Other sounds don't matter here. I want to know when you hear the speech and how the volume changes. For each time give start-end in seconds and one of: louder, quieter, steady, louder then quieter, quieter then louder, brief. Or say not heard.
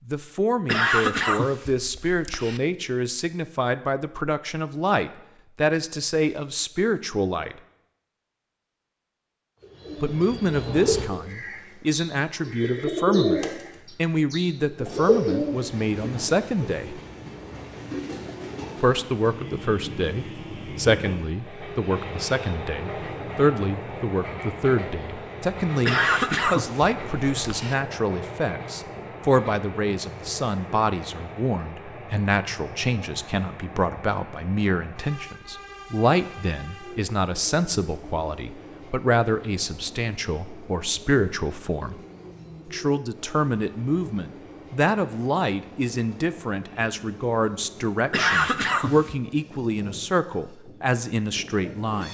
0.1-7.5 steady
10.0-17.0 steady
18.8-42.0 steady
42.6-52.0 steady.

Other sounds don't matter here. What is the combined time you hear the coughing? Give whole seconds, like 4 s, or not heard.
5 s.